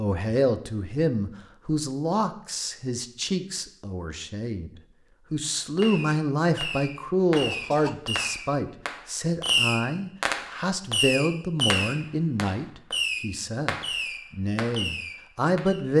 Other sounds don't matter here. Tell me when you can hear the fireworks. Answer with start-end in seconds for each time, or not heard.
5.8-15.8.